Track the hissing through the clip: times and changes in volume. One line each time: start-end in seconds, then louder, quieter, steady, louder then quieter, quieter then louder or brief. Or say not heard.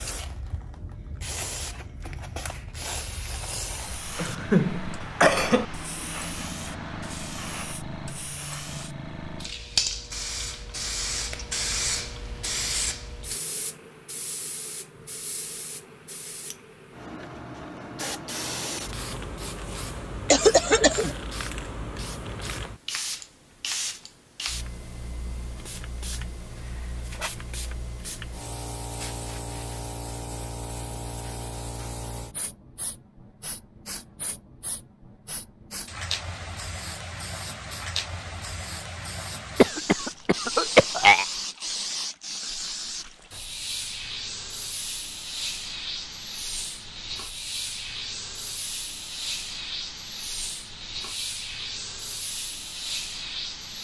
0.0-53.7 steady.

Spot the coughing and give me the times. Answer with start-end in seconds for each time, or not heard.
4.2-5.7, 20.3-21.1, 39.5-41.2.